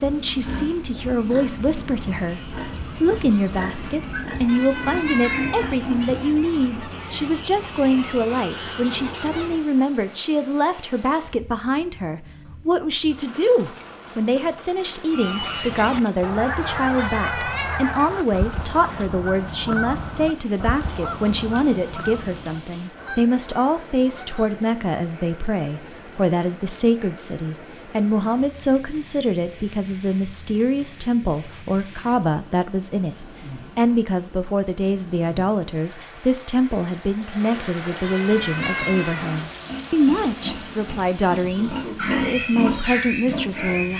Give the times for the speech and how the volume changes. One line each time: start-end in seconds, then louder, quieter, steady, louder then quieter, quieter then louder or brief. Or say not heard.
0.0-43.9 steady.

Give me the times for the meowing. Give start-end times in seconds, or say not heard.
4.5-5.8, 16.9-17.8, 38.0-39.4.